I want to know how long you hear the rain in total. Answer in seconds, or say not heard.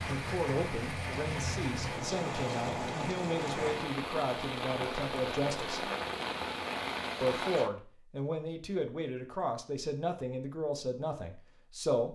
8 s.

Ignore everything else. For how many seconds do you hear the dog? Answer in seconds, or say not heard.
not heard.